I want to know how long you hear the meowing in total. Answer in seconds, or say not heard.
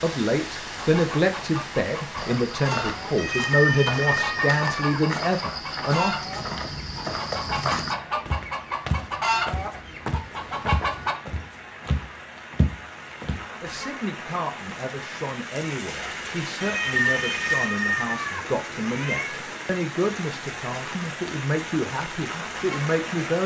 5 s.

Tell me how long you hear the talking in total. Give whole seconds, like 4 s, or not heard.
16 s.